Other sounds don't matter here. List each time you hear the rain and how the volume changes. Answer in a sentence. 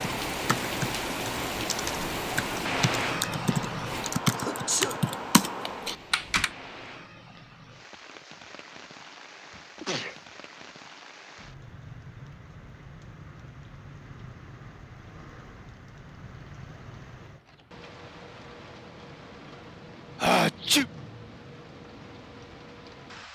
You can hear the rain from 0.0 to 23.2 s, getting quieter.